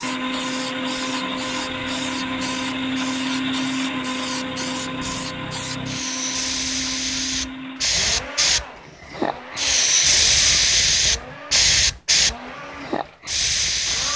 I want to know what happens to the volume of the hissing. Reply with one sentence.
The loudness of the hissing goes up.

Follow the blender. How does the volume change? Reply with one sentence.
The volume of the blender goes down.